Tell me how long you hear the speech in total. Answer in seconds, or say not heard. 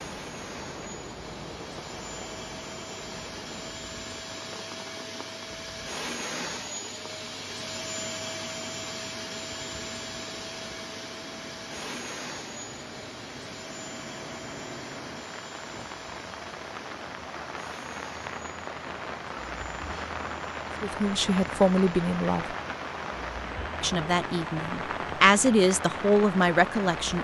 5 s.